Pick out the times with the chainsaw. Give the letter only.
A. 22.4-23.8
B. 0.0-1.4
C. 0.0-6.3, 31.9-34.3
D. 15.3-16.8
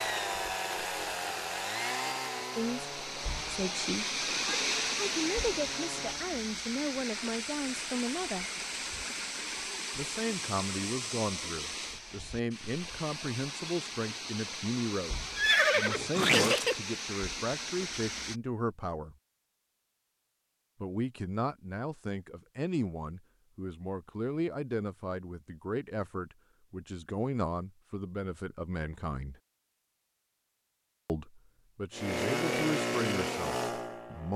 C.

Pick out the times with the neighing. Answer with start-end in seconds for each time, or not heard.
15.3-16.8.